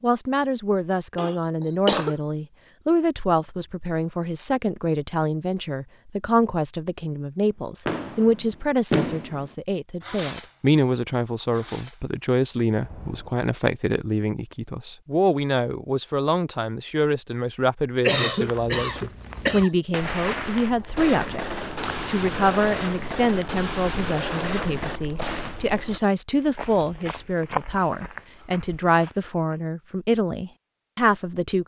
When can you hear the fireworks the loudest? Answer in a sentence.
The volume of the fireworks peaks at 9 seconds.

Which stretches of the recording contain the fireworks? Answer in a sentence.
The fireworks can be heard from 7.8 to 10.7 s, from 11.5 to 12.2 s, from 12.8 to 13.3 s and from 19.9 to 25.6 s.